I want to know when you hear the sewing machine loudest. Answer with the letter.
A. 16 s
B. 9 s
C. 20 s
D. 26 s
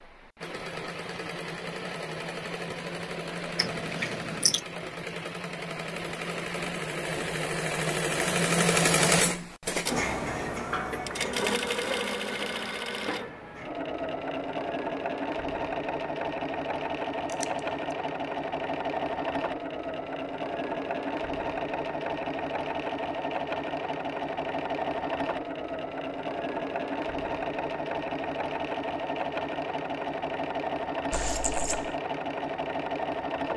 B.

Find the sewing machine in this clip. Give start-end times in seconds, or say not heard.
0.0-33.5.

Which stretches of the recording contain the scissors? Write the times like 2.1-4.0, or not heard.
3.5-4.6, 17.2-17.8, 31.1-31.9.